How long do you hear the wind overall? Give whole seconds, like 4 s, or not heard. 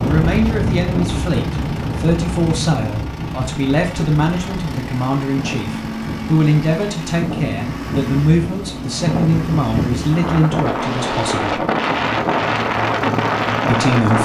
14 s.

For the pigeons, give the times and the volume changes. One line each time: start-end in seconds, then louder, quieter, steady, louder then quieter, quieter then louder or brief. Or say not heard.
not heard.